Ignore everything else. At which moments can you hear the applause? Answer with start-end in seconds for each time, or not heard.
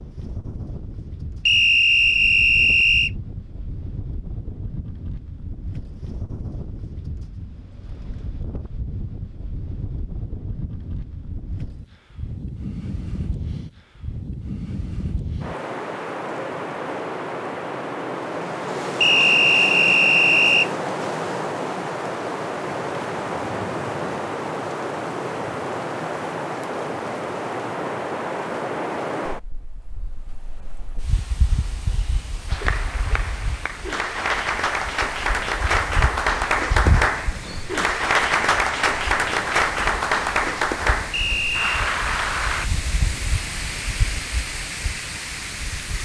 32.5-42.7.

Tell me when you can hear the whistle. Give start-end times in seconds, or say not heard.
1.4-3.1, 19.0-20.7, 41.1-41.7.